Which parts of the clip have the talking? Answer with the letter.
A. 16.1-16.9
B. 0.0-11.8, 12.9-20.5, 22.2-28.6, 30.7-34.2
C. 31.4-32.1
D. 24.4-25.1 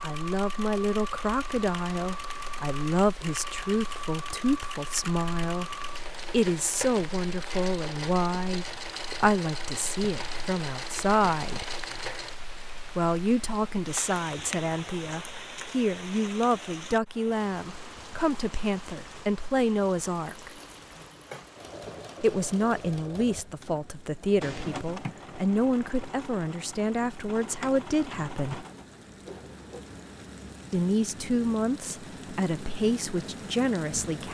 B.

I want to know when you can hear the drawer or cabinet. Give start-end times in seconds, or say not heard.
24.4-25.1.